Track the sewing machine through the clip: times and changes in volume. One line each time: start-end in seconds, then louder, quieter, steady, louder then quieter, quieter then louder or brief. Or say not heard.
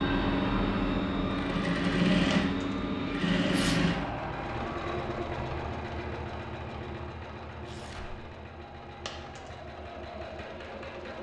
0.0-11.1 quieter.